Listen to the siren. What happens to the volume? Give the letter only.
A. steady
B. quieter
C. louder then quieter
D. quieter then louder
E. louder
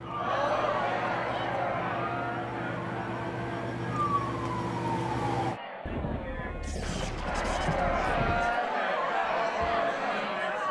E.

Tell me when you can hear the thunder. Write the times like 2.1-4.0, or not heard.
5.8-8.6.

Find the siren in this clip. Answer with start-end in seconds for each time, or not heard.
0.0-5.6.